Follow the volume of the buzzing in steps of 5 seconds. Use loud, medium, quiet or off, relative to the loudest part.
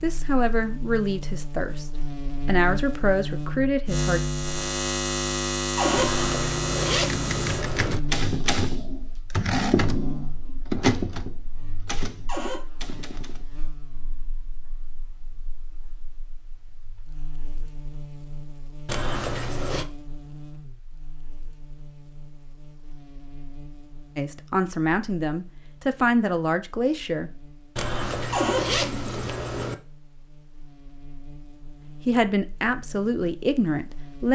loud, loud, quiet, quiet, quiet, quiet, quiet.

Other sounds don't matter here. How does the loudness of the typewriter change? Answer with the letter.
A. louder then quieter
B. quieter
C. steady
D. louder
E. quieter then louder
B.